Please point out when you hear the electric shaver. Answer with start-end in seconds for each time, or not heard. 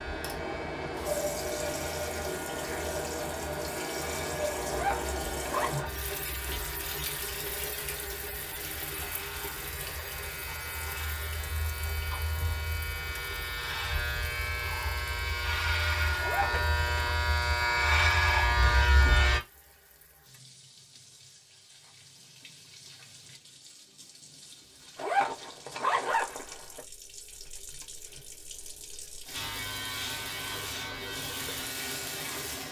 0.0-19.4, 29.3-32.6.